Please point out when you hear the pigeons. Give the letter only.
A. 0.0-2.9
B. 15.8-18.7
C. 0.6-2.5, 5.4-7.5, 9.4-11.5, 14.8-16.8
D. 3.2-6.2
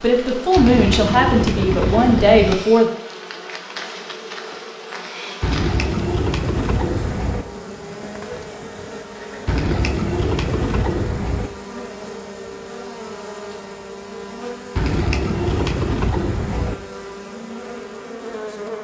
C.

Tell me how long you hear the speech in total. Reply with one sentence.
You can hear the speech for 3 seconds altogether.